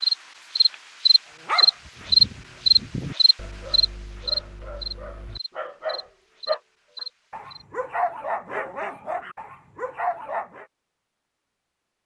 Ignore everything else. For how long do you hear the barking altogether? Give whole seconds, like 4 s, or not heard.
9 s.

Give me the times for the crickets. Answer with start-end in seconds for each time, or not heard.
0.0-7.7.